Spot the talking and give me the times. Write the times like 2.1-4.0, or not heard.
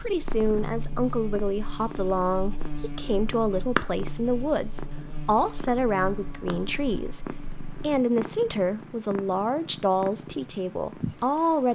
0.0-11.7.